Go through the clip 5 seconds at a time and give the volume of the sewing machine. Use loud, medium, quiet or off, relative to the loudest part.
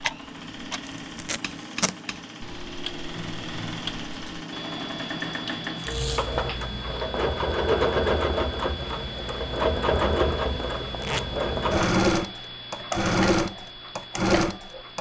quiet, loud, loud.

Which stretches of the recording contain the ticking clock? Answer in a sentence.
The ticking clock can be heard from 0.0 to 14.9 s.